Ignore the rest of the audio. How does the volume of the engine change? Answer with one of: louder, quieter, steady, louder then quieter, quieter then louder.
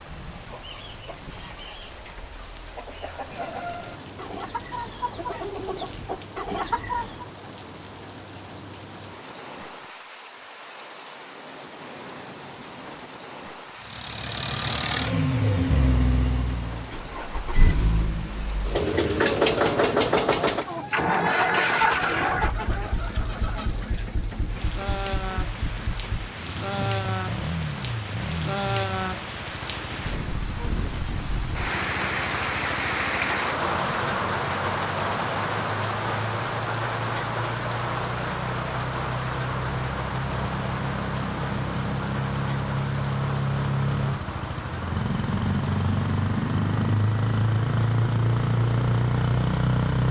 quieter then louder.